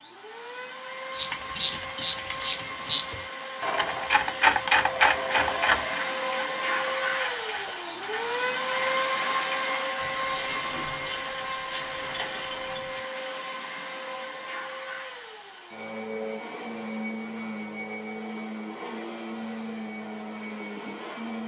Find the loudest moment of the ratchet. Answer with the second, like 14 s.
5 s.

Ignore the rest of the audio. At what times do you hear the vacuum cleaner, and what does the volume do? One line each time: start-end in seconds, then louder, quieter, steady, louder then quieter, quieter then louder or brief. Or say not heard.
0.0-21.4 louder then quieter.